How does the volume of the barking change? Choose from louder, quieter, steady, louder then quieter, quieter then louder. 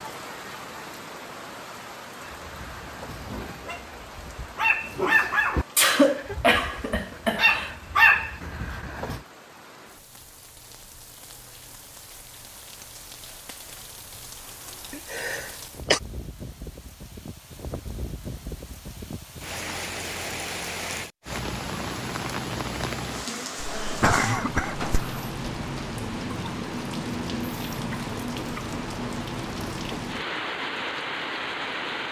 louder.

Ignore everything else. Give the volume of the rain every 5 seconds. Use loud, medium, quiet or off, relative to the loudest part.
medium, quiet, quiet, medium, loud, loud, loud.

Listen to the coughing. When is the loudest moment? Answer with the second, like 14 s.
6 s.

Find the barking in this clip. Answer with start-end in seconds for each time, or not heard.
2.2-9.2.